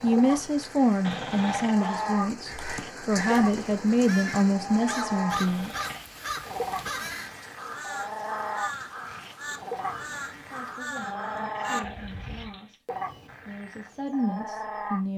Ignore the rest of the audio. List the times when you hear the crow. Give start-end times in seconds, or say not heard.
1.3-12.6.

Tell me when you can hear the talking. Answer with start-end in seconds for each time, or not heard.
0.0-5.7, 10.3-12.8, 13.4-15.1.